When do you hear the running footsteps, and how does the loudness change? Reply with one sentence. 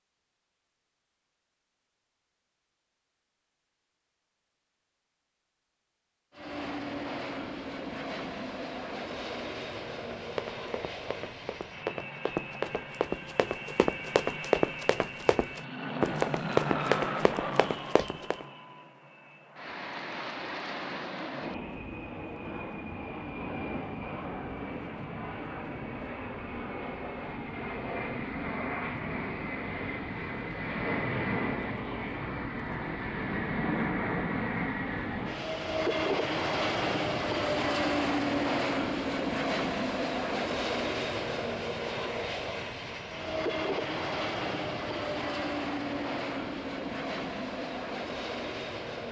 The running footsteps can be heard from 10.2 to 18.4 s, getting louder.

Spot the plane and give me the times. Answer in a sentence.
The plane can be heard from 6.3 to 49.0 s.